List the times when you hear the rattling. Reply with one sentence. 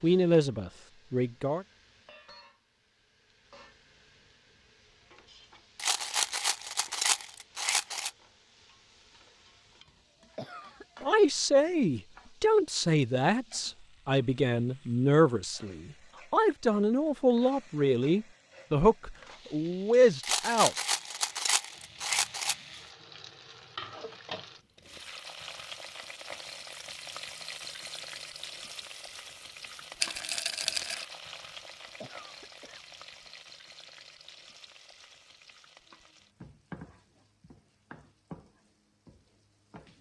You can hear the rattling from 5.8 to 8.1 s, from 20.2 to 22.6 s and from 30.0 to 31.1 s.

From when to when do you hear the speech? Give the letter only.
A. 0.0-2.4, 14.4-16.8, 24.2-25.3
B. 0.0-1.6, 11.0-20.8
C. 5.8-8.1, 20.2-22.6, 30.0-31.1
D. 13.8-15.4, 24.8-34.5
B.